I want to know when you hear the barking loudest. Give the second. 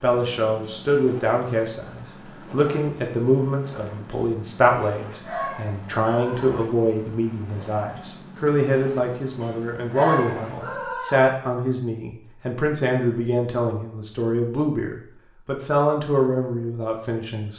10 s.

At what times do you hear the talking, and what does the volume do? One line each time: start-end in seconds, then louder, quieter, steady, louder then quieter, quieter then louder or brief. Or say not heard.
0.0-17.5 steady.